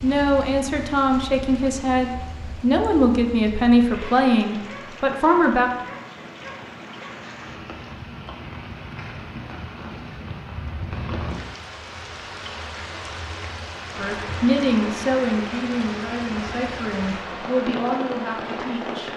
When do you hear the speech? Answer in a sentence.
The speech can be heard from 0.0 to 5.7 s and from 13.9 to 19.1 s.